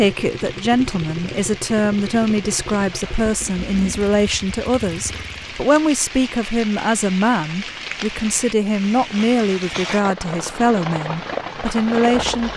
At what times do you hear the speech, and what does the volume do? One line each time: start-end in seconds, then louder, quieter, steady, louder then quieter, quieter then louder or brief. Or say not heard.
0.0-12.5 steady.